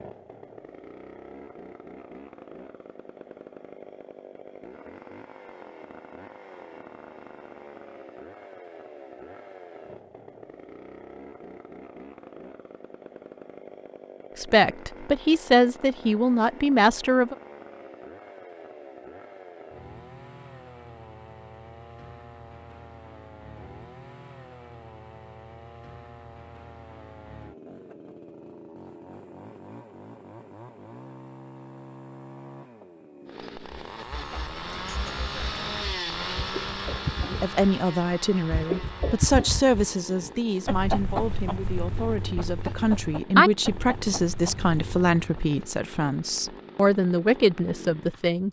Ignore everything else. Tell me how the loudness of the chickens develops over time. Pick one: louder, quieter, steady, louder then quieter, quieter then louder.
louder then quieter.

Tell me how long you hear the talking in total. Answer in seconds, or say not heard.
14 s.